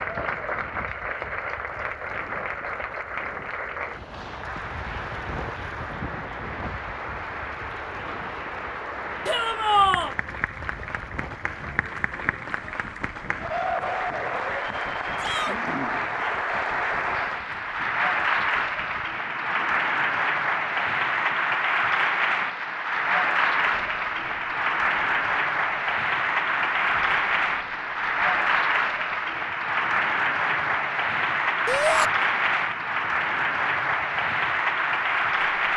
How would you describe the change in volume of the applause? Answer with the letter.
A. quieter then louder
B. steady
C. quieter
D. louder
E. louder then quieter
D.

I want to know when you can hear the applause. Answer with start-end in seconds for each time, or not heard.
0.0-35.7.